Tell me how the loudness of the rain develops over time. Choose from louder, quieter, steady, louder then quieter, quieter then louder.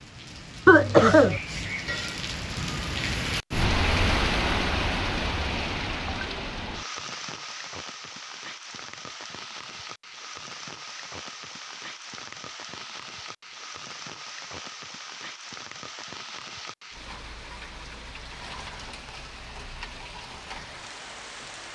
quieter.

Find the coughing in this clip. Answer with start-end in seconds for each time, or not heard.
0.7-1.4.